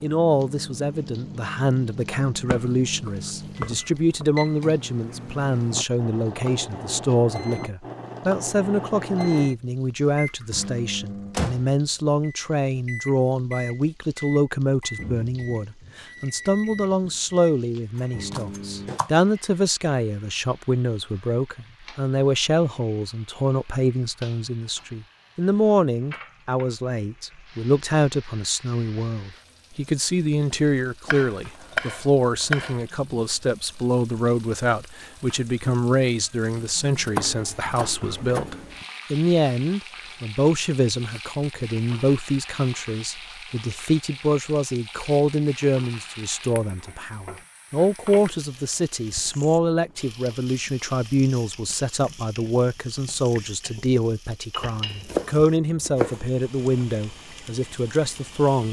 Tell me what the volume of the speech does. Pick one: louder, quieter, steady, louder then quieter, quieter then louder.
steady.